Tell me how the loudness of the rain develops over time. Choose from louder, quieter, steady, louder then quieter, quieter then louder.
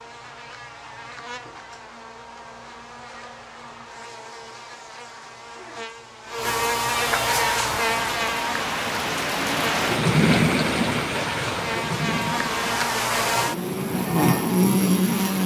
louder then quieter.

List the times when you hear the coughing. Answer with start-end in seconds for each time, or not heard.
not heard.